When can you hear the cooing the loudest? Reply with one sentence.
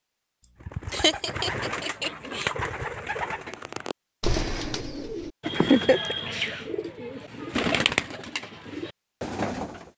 The volume of the cooing peaks at 8 seconds.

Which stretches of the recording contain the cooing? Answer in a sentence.
You can hear the cooing from 0.6 to 9.9 s.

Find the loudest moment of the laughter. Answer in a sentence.
The volume of the laughter peaks at 6 seconds.